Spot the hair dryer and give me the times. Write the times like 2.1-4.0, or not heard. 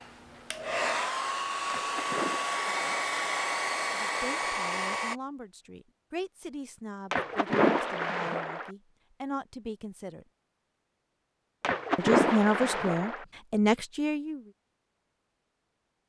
0.0-5.2.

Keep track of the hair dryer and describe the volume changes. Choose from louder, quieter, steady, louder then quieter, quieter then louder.
steady.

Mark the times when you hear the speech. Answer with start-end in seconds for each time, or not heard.
3.9-10.2, 11.9-14.4.